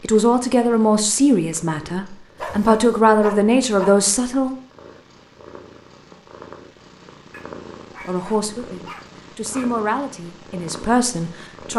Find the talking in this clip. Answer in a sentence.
The talking can be heard from 0.0 to 4.5 s and from 8.0 to 11.7 s.